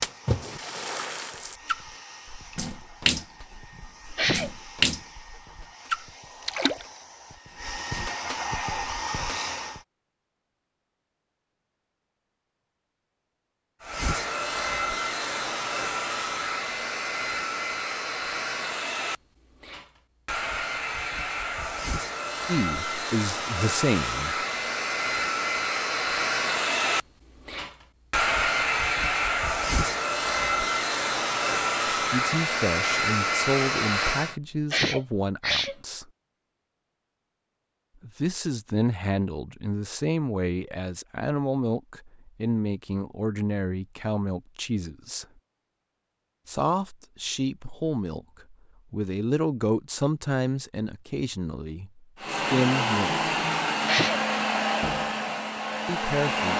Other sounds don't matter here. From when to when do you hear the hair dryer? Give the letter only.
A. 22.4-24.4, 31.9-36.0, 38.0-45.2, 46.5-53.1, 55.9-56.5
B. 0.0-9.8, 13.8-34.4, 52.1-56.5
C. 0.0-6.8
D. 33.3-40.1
B.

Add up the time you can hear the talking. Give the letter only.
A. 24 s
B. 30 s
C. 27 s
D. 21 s
D.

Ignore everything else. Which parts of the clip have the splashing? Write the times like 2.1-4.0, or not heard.
0.0-6.8.